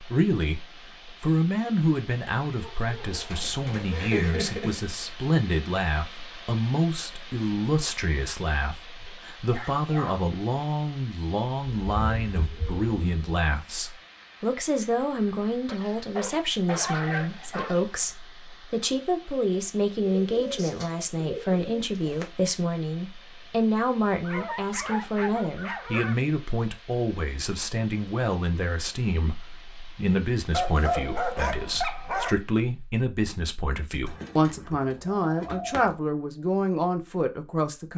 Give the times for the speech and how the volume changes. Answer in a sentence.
The speech can be heard from 0.0 to 37.9 s, at a steady volume.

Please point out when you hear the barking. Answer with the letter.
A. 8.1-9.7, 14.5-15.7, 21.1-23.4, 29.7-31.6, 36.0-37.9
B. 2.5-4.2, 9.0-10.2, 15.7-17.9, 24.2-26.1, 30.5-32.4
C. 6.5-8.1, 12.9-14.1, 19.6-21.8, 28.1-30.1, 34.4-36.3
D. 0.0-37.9
B.